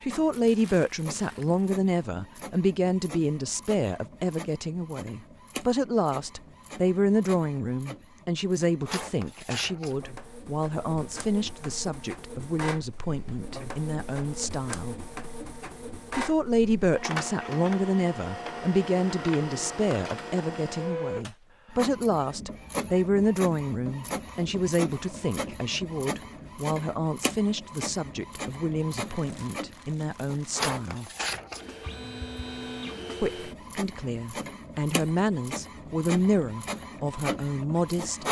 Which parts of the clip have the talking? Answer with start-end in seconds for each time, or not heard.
0.0-14.9, 16.1-31.1, 33.2-38.2.